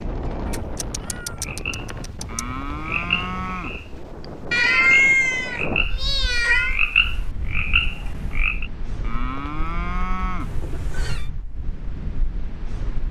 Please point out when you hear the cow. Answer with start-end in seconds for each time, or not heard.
2.2-4.1, 9.0-10.7.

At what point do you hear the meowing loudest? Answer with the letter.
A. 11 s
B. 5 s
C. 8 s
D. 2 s
B.